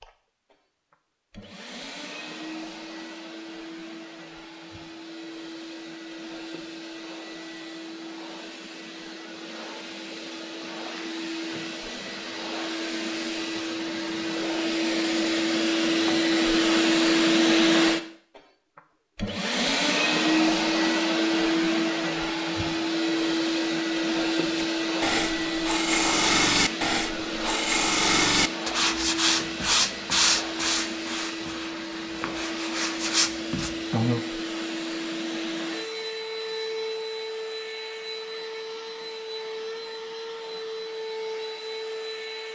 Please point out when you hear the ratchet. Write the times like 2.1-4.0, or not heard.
not heard.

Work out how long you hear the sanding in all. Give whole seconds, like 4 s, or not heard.
10 s.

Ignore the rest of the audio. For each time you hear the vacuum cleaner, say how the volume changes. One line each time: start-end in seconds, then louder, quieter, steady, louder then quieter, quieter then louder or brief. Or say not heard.
0.0-42.5 louder then quieter.